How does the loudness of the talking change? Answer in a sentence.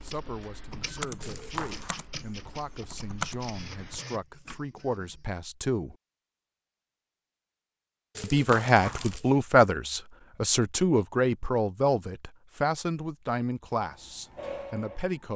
The loudness of the talking goes up, then down.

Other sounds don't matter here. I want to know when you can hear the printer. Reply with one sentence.
The printer can be heard from 0.0 to 5.3 s and from 13.8 to 15.3 s.